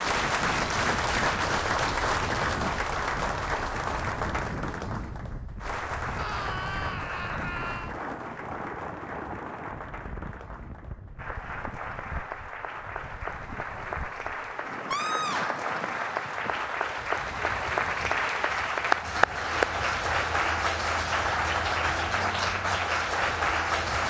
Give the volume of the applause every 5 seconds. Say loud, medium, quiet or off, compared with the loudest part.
loud, medium, medium, loud, loud.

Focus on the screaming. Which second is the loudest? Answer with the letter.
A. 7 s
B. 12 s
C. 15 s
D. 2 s
C.